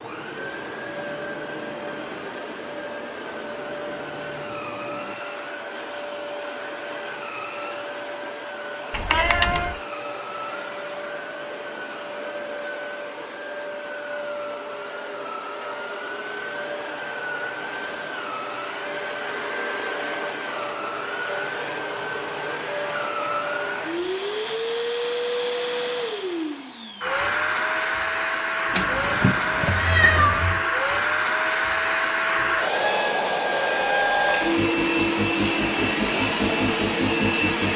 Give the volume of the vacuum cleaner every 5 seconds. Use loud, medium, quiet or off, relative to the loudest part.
medium, medium, medium, medium, medium, loud, loud, loud.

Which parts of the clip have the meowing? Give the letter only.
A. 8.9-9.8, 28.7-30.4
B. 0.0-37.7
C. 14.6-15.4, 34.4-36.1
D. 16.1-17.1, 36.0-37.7
A.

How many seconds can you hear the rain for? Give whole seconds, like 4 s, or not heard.
not heard.